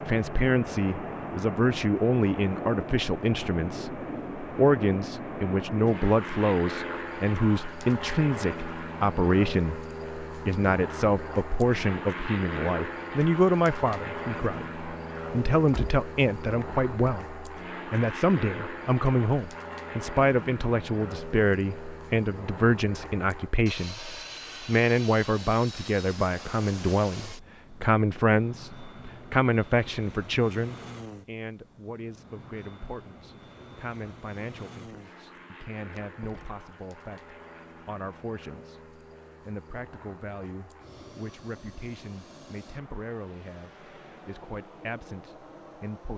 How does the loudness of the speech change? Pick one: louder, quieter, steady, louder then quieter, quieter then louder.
quieter.